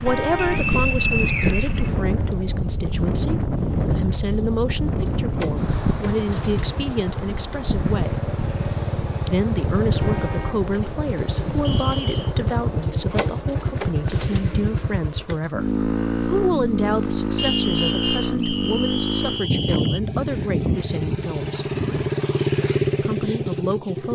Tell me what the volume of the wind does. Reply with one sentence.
The volume of the wind goes down.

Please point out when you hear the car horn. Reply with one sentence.
The car horn can be heard from 0.1 to 0.7 s, from 10.0 to 10.7 s and from 17.4 to 18.2 s.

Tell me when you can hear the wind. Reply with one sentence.
The wind can be heard from 0.0 to 12.9 s.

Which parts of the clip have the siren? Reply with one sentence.
You can't hear the siren here.